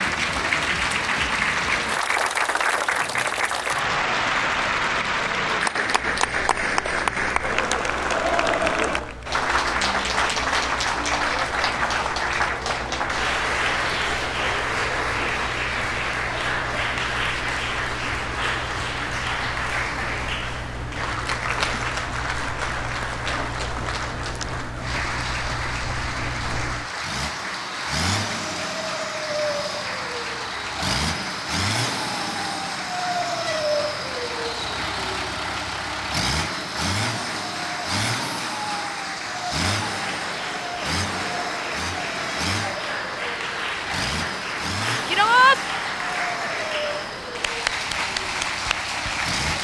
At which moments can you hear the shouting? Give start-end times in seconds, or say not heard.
45.0-45.6.